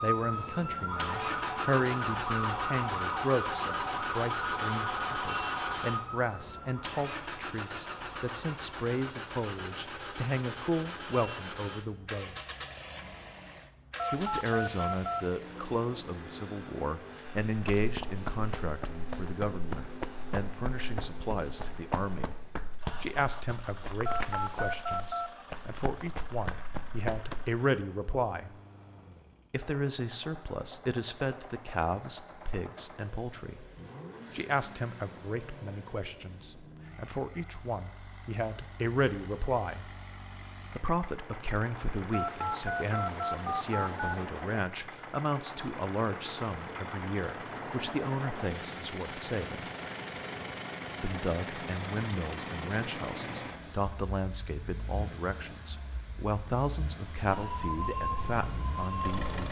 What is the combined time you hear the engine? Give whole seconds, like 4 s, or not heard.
59 s.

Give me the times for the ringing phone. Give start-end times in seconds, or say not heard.
13.9-15.3, 24.1-25.4, 42.1-44.2.